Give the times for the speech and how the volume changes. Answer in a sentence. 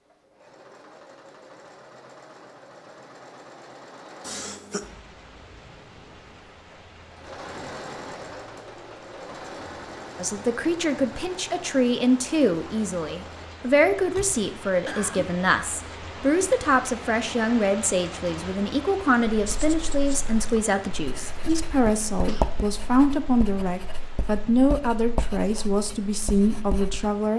The speech can be heard from 10.2 to 27.3 s, at a steady volume.